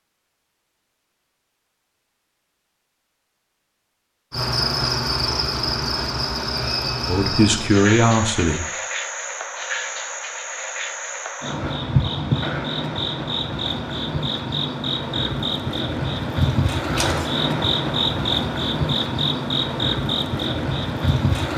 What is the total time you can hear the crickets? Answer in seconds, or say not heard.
17 s.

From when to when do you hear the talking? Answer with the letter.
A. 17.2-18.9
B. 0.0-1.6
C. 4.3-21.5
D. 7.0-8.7
D.